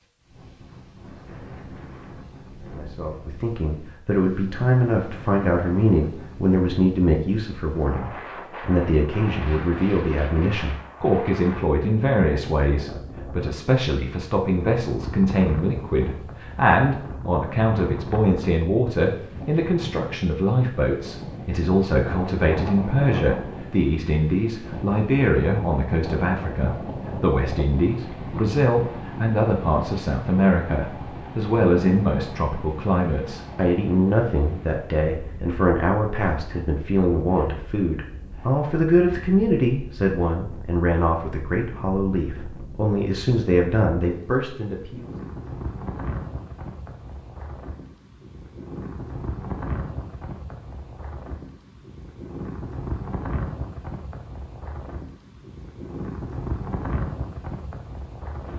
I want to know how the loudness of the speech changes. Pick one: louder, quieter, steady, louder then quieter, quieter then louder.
steady.